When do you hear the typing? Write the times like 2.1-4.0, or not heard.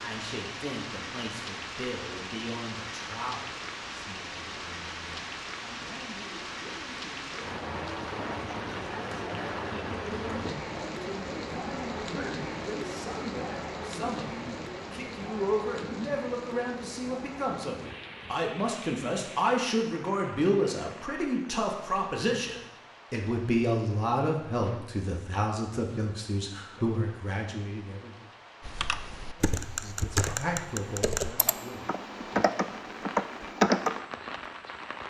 28.6-34.0.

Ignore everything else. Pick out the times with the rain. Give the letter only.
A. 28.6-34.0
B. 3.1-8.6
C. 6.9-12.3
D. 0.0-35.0
D.